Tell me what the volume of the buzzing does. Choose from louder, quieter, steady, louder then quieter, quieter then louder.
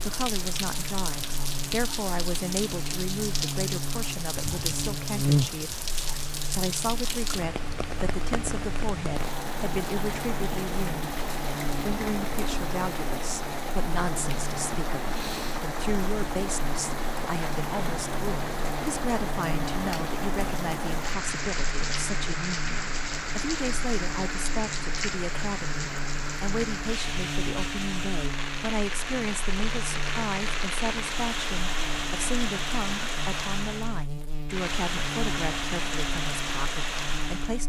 quieter.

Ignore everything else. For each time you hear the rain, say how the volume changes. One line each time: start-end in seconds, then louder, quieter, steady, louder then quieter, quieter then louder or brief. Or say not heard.
0.0-37.6 steady.